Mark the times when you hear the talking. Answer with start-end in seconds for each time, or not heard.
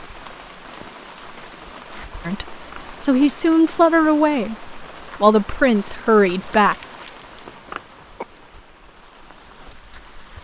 2.2-6.8.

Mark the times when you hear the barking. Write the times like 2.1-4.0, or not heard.
not heard.